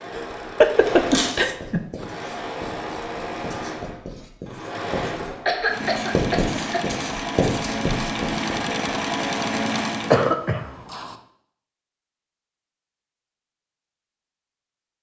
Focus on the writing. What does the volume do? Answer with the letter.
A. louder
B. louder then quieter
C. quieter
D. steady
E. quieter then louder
A.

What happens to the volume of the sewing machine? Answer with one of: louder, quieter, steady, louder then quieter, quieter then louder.
louder.